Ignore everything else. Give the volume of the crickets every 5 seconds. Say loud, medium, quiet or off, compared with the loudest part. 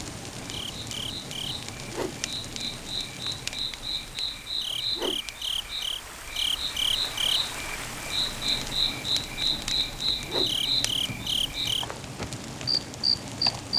medium, loud, loud.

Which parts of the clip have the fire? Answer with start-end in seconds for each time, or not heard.
0.0-13.7.